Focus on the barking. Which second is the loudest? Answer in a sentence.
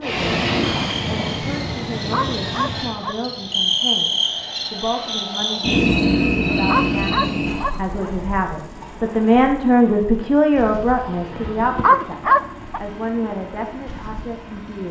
The loudest moment of the barking is at 12 seconds.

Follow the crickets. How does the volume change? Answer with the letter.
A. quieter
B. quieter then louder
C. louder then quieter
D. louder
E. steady
C.